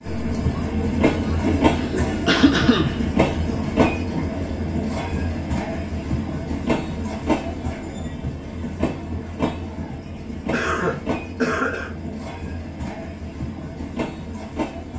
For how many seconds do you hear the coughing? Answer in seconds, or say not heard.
3 s.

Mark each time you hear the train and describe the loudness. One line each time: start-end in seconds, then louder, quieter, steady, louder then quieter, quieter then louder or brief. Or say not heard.
0.0-14.9 quieter.